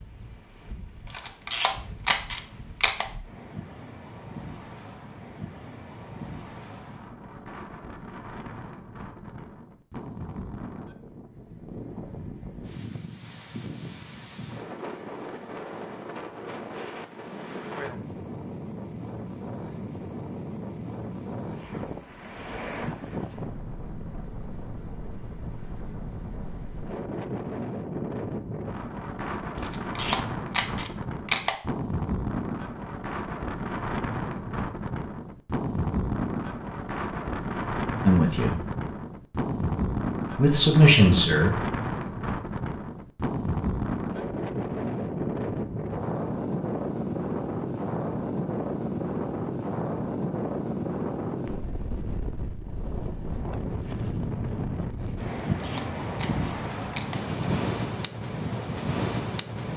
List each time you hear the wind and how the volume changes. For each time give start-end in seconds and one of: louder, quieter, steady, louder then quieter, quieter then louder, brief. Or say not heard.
0.0-59.7 louder.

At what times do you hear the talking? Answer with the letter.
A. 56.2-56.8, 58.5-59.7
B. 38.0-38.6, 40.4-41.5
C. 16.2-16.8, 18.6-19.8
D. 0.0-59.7
B.